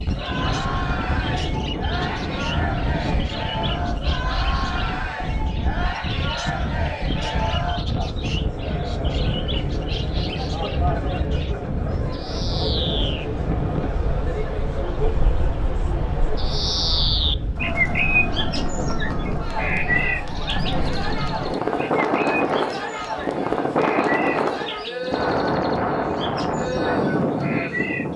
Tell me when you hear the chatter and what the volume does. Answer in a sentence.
The chatter can be heard from 0.1 to 28.1 s, at a steady volume.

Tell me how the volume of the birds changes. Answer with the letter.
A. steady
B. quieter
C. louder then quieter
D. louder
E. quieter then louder
C.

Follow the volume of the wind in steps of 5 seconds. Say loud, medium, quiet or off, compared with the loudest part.
medium, medium, medium, medium, loud, loud.